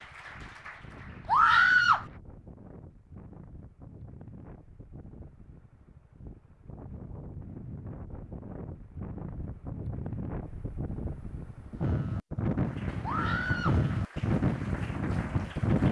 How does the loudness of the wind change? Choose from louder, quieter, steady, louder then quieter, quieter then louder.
louder.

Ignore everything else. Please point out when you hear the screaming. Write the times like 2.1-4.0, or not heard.
1.2-2.0, 13.0-13.8.